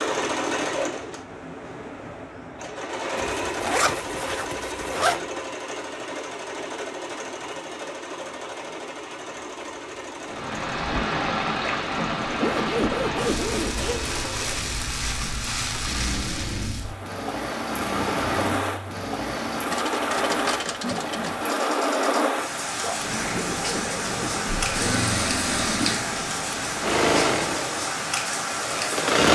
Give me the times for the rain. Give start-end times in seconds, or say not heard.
10.2-29.2.